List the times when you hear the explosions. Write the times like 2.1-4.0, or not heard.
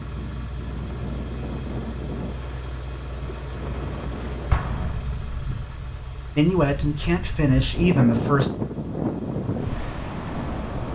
4.5-5.4.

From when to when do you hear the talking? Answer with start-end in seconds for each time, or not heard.
6.3-8.5.